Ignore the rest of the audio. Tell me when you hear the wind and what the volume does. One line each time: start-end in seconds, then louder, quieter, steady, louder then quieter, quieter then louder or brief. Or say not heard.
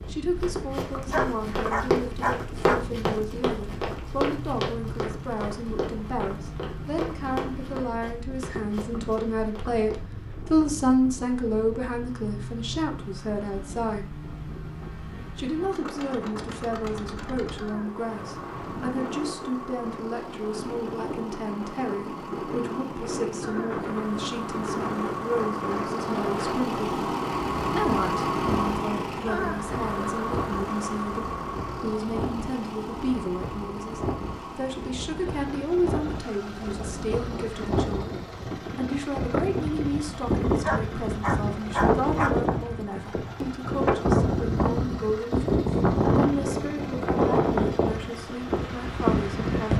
0.0-49.7 louder.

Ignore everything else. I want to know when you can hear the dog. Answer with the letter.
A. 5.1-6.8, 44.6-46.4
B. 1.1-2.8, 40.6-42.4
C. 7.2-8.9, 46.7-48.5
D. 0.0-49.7
B.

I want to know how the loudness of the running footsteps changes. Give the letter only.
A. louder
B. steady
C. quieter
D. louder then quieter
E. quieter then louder
C.